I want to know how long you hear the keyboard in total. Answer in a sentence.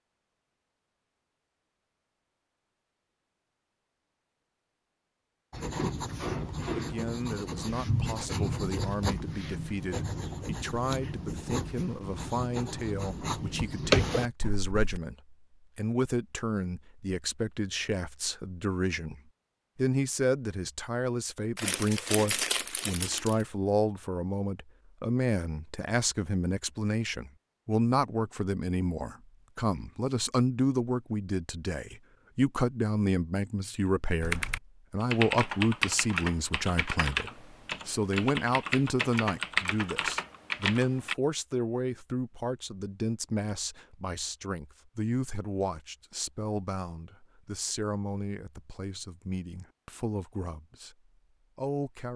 You can hear the keyboard for 7 seconds altogether.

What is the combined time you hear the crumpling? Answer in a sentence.
You can hear the crumpling for 2 seconds altogether.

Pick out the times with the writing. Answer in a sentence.
You can hear the writing from 5.5 to 15.0 s.